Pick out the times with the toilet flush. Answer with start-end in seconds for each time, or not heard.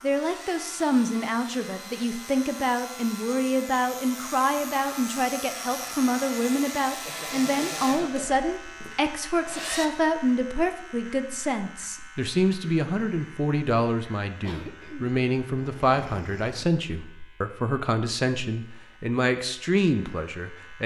not heard.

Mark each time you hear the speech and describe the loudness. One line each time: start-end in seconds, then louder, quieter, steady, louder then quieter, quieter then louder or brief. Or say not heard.
0.0-20.8 steady.